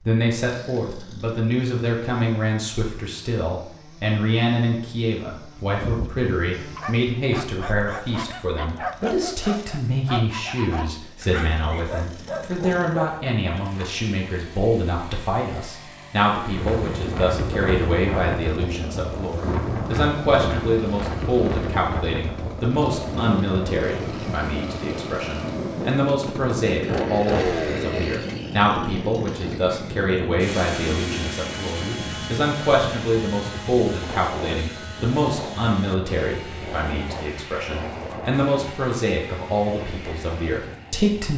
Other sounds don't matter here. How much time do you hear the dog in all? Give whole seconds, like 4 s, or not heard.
8 s.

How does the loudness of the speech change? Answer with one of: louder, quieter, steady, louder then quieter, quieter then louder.
steady.